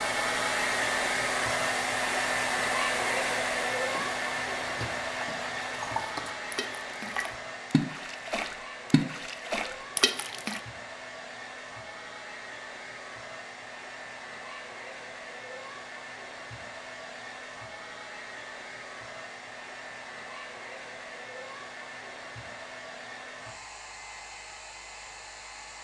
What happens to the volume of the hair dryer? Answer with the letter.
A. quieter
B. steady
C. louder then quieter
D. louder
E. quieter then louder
A.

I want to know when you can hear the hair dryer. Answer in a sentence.
You can hear the hair dryer from 0.0 to 25.7 s.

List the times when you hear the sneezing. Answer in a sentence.
The sneezing can't be heard in this clip.